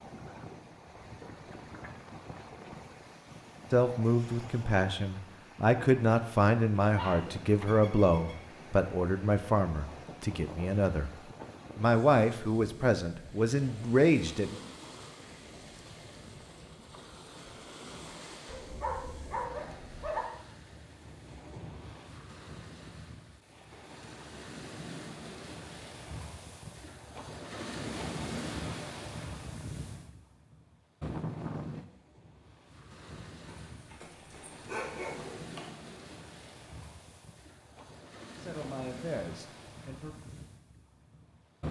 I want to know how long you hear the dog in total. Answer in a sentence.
You can hear the dog for 5 seconds altogether.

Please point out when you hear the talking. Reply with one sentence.
You can hear the talking from 3.7 to 11.1 s, from 11.8 to 14.6 s and from 38.4 to 40.1 s.